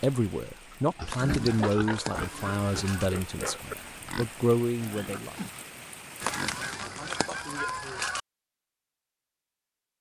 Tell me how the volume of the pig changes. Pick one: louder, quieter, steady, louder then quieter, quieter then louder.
quieter.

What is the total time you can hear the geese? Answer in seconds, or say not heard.
4 s.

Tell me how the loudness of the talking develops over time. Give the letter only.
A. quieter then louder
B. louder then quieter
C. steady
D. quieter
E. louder
A.